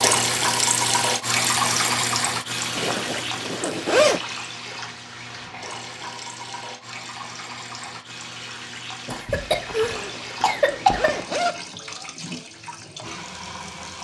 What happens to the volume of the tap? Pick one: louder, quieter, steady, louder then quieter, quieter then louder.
quieter.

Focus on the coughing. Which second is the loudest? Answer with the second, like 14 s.
11 s.